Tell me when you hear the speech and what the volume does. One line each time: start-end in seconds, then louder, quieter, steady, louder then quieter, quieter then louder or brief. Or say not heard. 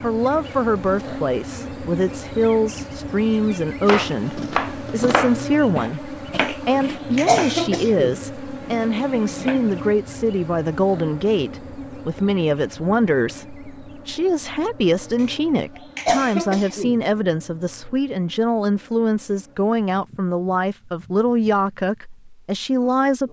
0.0-23.2 steady.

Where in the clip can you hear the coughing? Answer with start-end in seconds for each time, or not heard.
6.4-8.2, 15.2-17.0.